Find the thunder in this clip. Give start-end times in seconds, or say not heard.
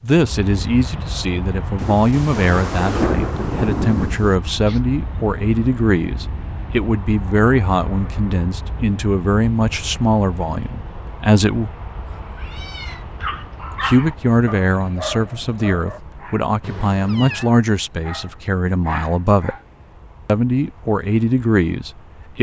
1.8-4.3.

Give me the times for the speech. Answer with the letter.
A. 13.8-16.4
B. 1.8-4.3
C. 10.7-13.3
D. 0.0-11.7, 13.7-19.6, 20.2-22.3
D.